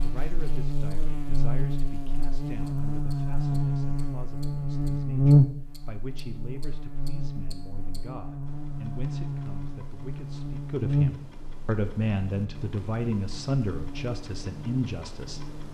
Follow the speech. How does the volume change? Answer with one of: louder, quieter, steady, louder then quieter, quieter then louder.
louder.